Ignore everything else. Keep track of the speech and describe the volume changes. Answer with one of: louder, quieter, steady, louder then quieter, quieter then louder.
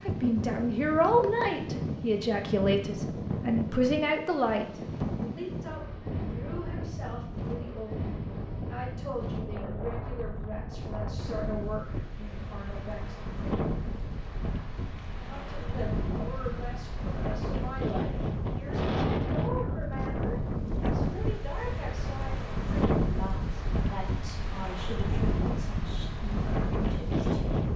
quieter.